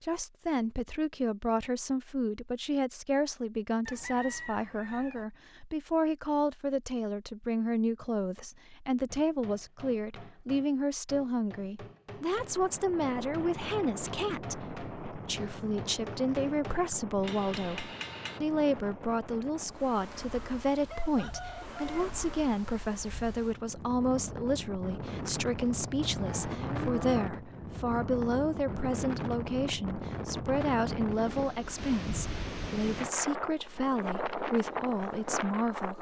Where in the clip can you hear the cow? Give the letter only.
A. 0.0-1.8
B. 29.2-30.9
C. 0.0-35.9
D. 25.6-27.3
D.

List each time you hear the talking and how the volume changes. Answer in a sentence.
The talking can be heard from 0.0 to 35.9 s, at a steady volume.